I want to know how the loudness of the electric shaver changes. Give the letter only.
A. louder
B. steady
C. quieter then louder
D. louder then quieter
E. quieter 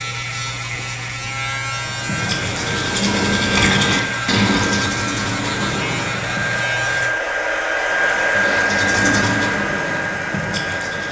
B.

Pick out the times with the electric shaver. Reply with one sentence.
The electric shaver can be heard from 0.0 to 7.2 s.